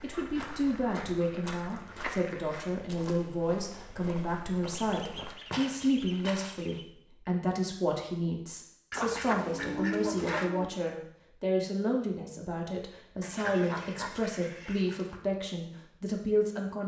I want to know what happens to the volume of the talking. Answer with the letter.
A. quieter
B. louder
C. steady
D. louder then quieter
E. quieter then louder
C.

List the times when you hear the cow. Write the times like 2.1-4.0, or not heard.
9.3-10.7.